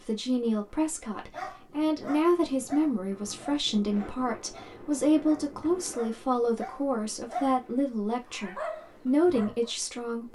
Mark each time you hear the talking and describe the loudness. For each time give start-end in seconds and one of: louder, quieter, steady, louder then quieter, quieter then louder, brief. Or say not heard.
0.0-10.2 steady.